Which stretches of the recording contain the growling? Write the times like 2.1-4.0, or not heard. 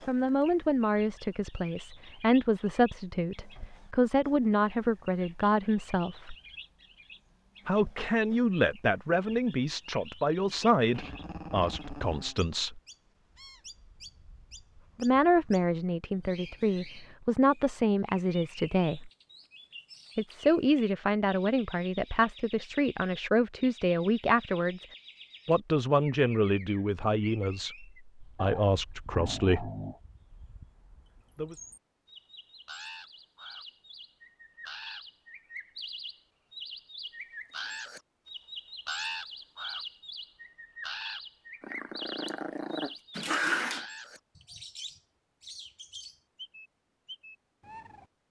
10.9-12.3, 28.4-30.0, 41.6-43.9.